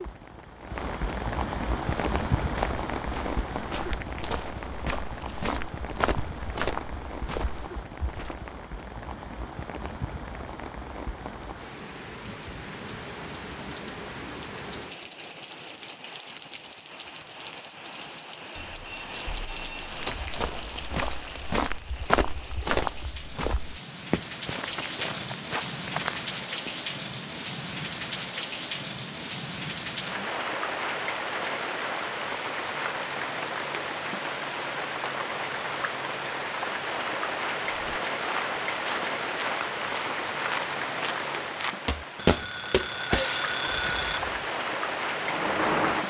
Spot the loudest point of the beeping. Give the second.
43 s.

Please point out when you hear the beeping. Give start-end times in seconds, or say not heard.
18.6-20.3, 42.1-44.2.